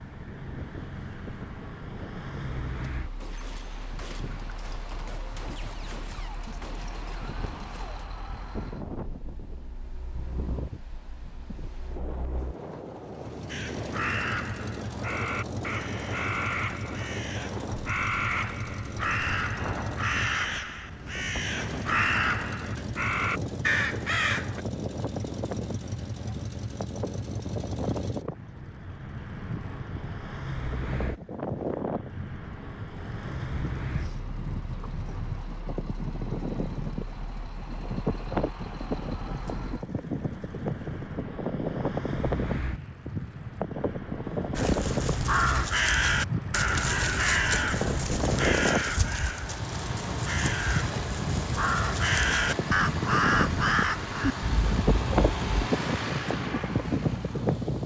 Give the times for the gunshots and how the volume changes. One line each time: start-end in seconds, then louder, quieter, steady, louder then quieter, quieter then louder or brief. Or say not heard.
3.2-8.1 steady.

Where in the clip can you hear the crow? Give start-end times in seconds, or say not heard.
13.4-24.6, 44.5-55.7.